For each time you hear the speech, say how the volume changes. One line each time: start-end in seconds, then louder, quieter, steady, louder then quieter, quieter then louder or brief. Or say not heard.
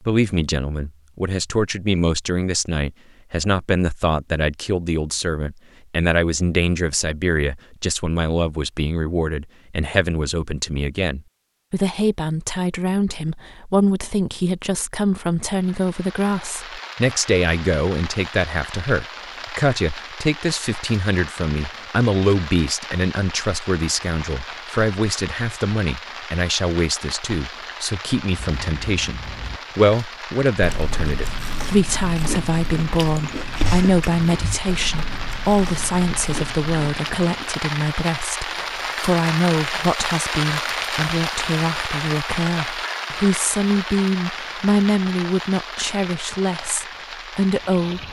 0.1-48.0 steady.